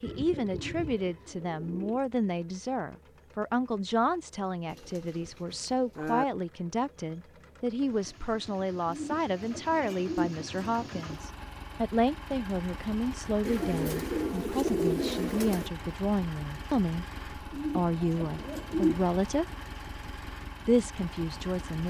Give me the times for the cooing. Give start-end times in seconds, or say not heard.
0.0-2.0, 4.7-6.2, 8.8-11.2, 13.4-15.7, 17.5-19.1.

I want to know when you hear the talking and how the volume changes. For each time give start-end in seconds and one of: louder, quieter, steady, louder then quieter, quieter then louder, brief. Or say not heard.
0.0-19.4 steady
20.6-21.8 brief.